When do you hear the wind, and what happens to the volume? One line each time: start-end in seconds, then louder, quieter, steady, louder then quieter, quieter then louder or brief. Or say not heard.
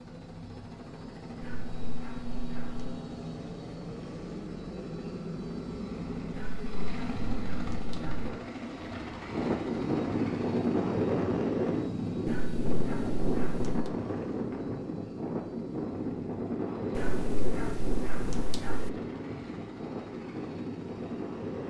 9.2-21.6 quieter.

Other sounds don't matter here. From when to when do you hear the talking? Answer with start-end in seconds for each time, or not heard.
not heard.